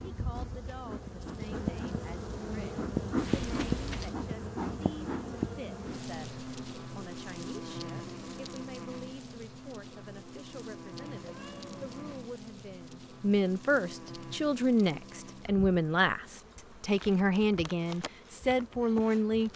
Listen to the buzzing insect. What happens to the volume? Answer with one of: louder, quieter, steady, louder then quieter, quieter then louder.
quieter.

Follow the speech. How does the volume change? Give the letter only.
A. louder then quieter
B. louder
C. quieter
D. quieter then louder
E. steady
B.